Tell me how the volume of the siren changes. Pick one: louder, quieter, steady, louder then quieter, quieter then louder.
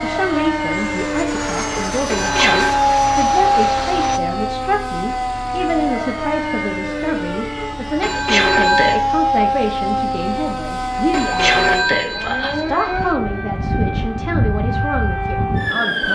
steady.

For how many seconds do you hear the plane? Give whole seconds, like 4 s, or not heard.
4 s.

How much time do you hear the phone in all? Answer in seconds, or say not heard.
4 s.